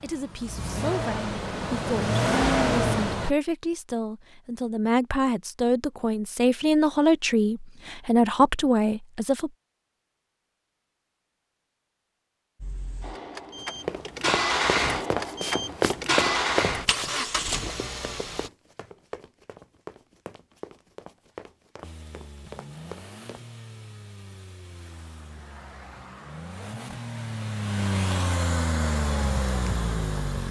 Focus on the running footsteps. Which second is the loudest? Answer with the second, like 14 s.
16 s.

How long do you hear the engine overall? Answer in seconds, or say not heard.
18 s.